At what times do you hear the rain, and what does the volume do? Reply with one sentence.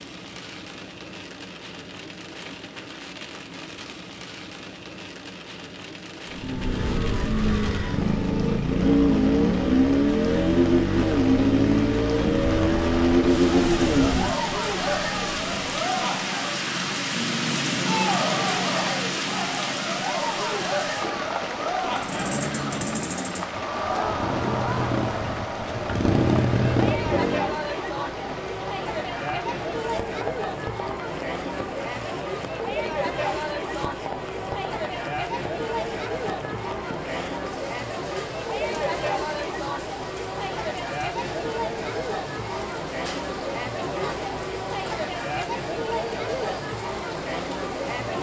You can hear the rain from 0.0 to 48.1 s, getting louder then quieter.